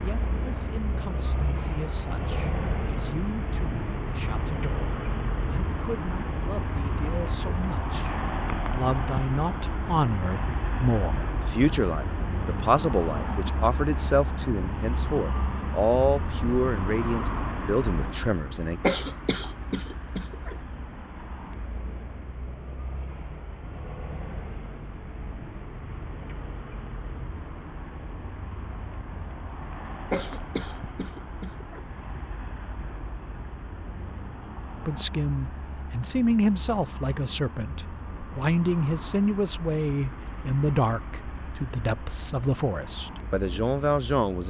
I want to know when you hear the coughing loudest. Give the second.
19 s.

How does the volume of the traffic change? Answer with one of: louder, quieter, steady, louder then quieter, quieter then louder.
quieter.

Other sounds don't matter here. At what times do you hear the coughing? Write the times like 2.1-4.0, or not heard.
18.8-20.6, 30.1-31.8.